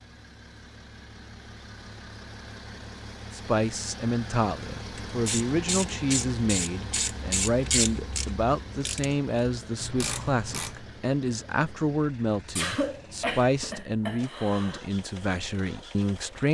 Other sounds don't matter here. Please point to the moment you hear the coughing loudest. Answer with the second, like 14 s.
13 s.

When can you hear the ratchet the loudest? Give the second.
8 s.